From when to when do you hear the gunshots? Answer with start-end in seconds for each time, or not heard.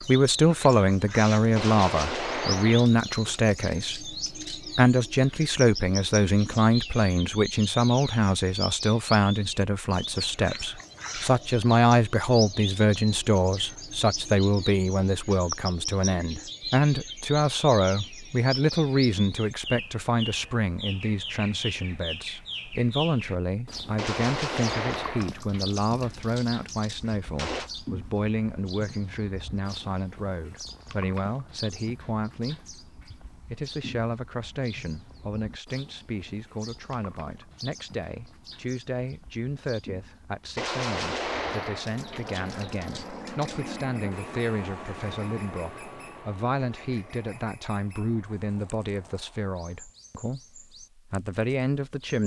1.6-4.6, 23.9-27.7, 40.5-43.6.